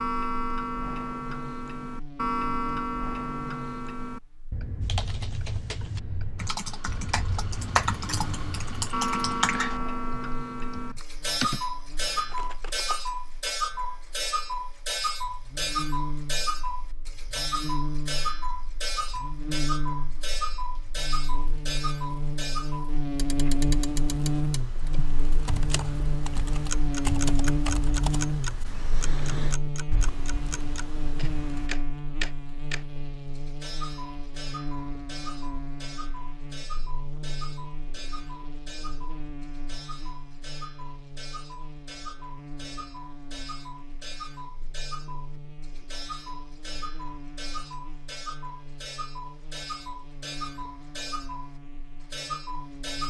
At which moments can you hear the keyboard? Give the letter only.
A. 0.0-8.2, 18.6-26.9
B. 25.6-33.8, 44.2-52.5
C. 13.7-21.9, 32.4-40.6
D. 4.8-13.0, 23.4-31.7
D.